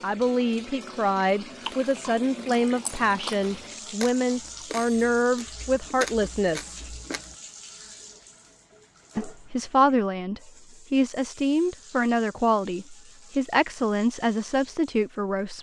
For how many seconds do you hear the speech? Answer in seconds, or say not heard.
13 s.